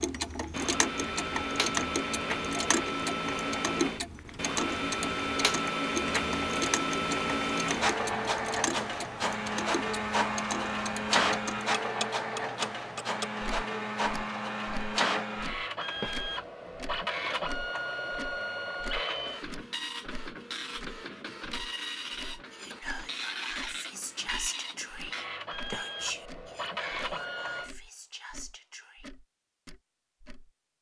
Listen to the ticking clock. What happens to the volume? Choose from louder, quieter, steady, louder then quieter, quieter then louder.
quieter.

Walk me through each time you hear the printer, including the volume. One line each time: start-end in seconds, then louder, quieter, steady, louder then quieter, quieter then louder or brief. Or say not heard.
0.2-27.7 quieter.